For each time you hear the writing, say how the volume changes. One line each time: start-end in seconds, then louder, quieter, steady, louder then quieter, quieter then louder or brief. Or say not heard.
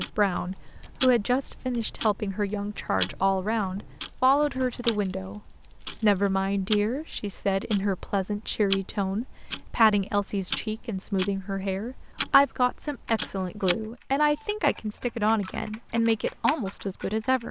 not heard.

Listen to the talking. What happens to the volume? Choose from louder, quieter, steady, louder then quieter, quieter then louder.
steady.